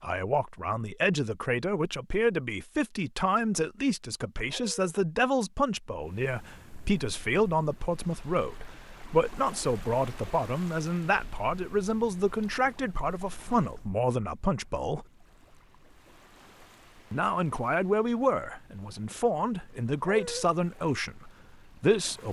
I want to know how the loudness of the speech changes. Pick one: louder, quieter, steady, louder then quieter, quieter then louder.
steady.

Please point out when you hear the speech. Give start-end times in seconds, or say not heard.
0.0-15.1, 17.1-22.2.